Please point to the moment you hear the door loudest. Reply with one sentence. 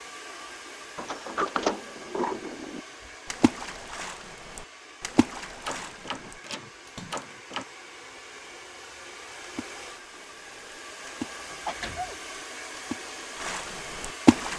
The volume of the door peaks at 2 seconds.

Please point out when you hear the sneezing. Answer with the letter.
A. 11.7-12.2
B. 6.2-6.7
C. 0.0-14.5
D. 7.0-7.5
A.